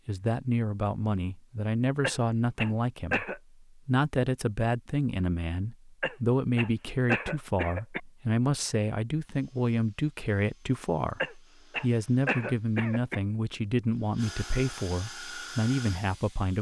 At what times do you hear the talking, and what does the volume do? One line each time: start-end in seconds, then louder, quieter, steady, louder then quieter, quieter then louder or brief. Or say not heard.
0.1-16.5 steady.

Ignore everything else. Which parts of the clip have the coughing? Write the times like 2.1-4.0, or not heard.
2.0-3.4, 6.0-8.0, 11.2-13.2.